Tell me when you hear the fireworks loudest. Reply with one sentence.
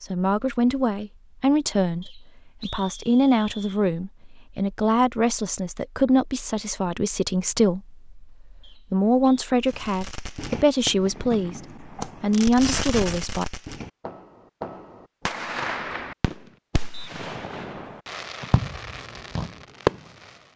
The loudest moment of the fireworks is at 20 seconds.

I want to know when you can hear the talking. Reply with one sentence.
The talking can be heard from 0.0 to 13.4 s.